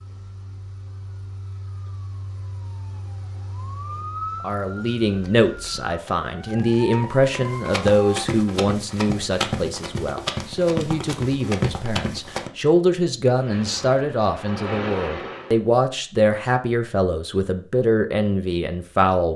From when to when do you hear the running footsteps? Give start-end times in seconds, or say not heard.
5.0-12.5.